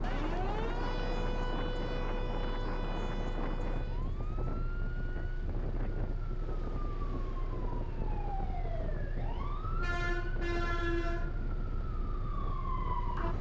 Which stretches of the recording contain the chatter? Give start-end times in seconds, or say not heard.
not heard.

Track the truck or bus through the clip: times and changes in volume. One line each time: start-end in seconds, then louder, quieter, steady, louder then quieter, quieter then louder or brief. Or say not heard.
0.0-13.3 steady.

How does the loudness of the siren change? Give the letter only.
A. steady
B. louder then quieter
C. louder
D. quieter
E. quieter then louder
E.